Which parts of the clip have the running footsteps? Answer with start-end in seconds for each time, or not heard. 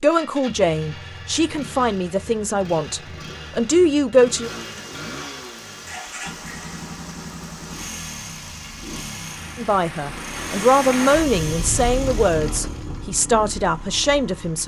not heard.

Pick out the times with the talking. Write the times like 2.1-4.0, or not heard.
0.0-4.5, 9.6-14.6.